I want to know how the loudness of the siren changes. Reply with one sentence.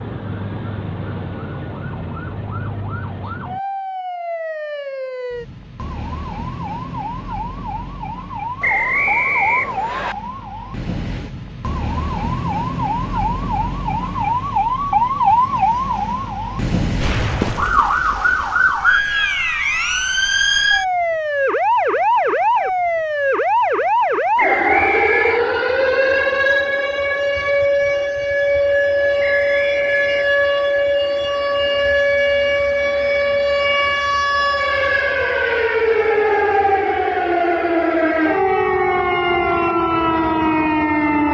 The loudness of the siren goes up.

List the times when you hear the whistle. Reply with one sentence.
The whistle can be heard from 8.6 to 10.2 s, from 24.4 to 25.4 s and from 29.2 to 30.6 s.